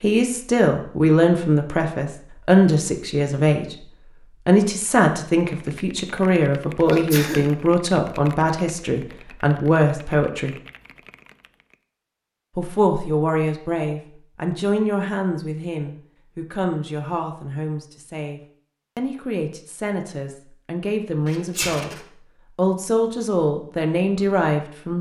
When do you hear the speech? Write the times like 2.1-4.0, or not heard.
0.0-3.8, 4.5-10.5, 12.6-21.9, 22.6-24.9.